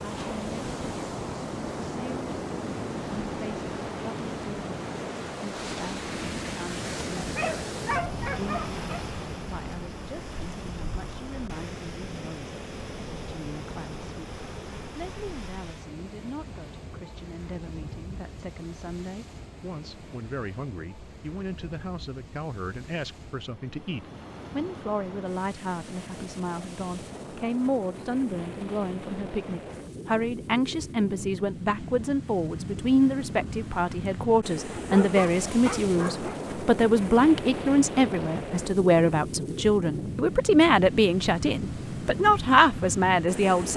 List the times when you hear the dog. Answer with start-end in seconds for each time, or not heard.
7.2-8.8, 34.7-36.4.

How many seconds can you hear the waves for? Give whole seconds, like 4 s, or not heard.
44 s.